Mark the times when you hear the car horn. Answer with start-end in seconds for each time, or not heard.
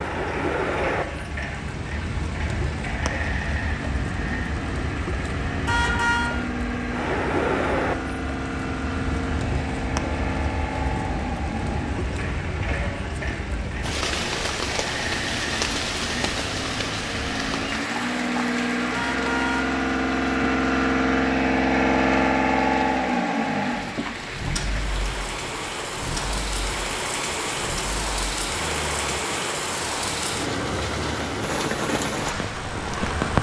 5.7-6.3, 18.9-19.7.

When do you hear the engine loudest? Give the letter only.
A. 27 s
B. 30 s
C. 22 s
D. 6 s
C.